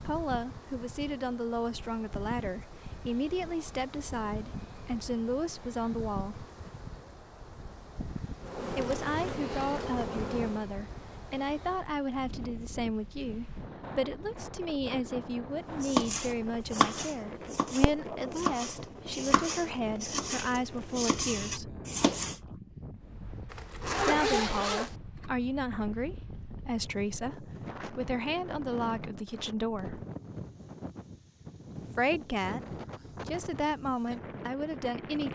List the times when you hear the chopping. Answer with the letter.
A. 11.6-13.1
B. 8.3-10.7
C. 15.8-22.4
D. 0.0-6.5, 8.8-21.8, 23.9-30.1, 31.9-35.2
C.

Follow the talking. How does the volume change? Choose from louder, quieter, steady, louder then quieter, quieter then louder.
steady.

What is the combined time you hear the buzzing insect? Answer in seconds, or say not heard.
2 s.